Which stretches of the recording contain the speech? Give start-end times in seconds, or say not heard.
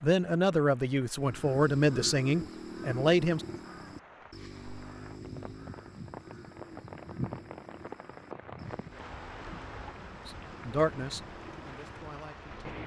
0.0-3.5, 10.2-12.8.